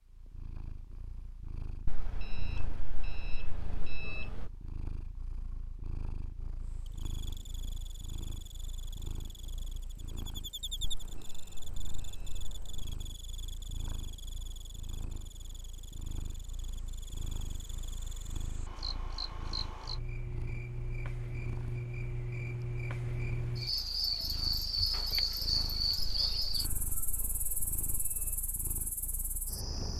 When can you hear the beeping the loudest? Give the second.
4 s.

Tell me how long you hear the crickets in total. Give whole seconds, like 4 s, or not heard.
23 s.